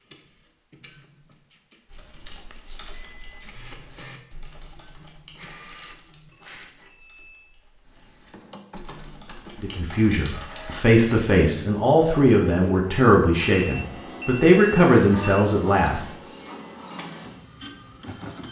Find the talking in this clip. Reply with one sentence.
The talking can be heard from 9.6 to 16.1 s.